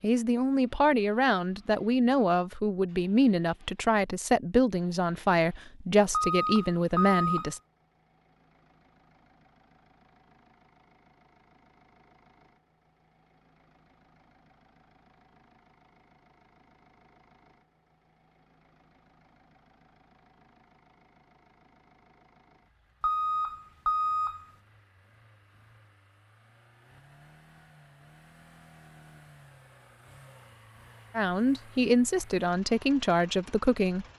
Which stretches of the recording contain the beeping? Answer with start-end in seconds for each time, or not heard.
6.1-7.5, 23.0-24.4.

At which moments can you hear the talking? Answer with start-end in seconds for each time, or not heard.
0.0-7.6, 31.1-34.1.